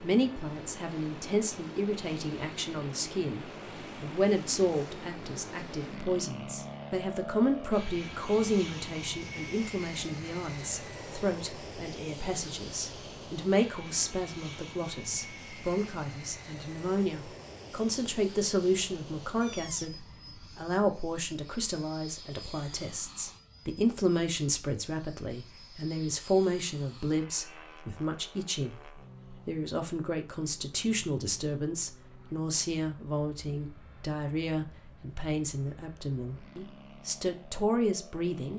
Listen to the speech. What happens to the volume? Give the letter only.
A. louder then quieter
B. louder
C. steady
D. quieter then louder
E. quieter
C.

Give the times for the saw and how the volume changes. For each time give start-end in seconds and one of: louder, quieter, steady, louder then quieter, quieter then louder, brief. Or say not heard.
not heard.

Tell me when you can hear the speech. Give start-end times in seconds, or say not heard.
0.0-19.9, 20.6-28.8, 29.4-38.5.